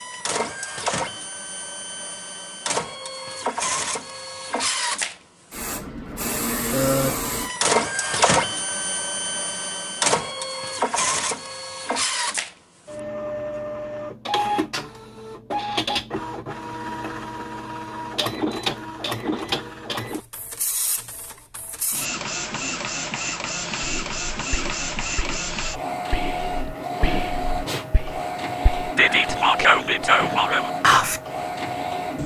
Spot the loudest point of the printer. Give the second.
8 s.